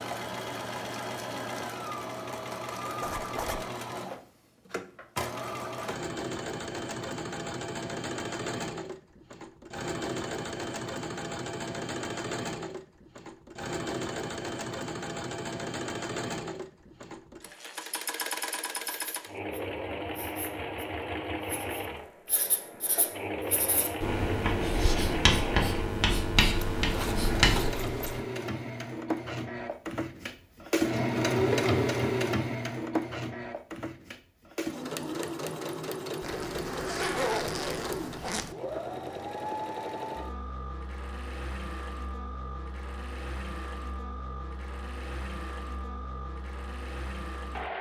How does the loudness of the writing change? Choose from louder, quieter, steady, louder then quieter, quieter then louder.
louder.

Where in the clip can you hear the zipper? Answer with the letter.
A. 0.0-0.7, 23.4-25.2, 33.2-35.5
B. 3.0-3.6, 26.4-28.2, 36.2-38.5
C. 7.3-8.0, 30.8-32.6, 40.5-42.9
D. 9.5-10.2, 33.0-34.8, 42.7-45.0
B.